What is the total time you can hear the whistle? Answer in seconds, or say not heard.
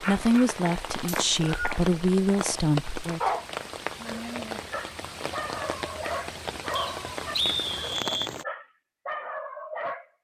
2 s.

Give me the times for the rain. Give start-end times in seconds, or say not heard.
0.0-8.4.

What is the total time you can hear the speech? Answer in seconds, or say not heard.
3 s.